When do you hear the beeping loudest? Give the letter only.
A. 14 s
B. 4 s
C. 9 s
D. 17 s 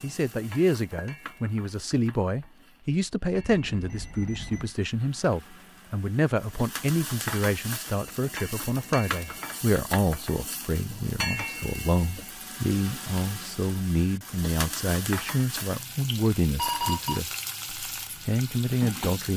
D.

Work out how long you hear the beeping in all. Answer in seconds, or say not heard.
2 s.